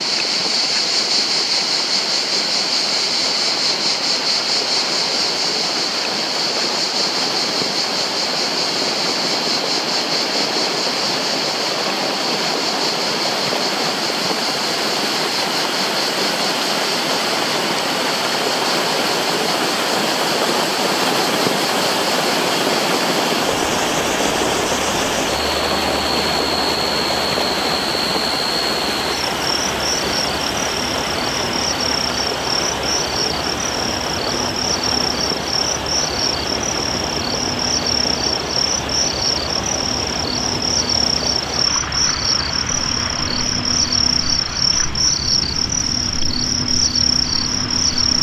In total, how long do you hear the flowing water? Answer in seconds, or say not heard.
48 s.